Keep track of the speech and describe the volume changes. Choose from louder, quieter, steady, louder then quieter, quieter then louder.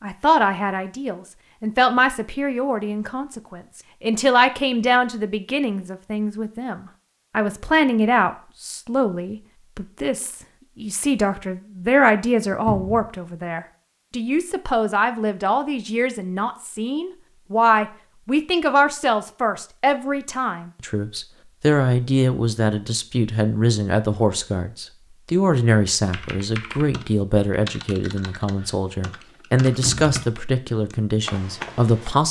steady.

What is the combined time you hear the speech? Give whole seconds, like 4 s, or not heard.
32 s.